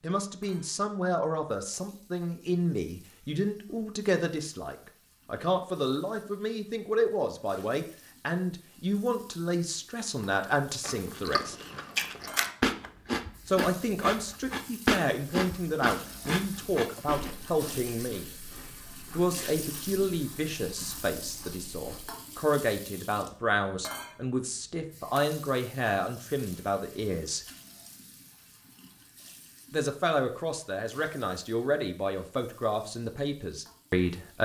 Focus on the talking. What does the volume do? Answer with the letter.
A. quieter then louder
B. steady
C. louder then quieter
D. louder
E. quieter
B.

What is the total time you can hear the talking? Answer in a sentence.
The talking can be heard for 29 seconds in total.